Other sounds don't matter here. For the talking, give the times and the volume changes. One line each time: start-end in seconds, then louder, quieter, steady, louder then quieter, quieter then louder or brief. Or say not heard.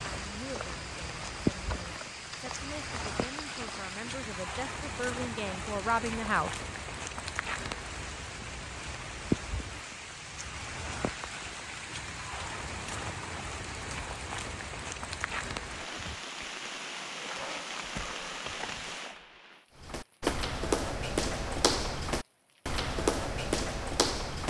0.2-6.6 louder.